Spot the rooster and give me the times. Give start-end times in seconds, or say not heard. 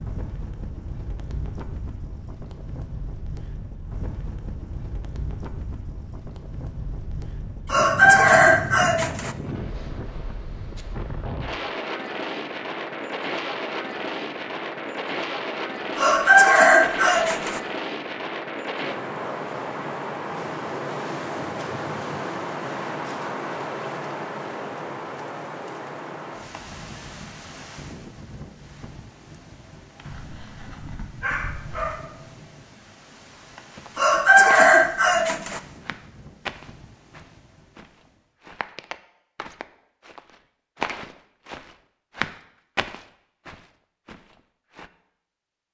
7.7-9.3, 15.9-17.6, 34.0-35.6.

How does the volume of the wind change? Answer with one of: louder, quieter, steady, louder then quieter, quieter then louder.
louder then quieter.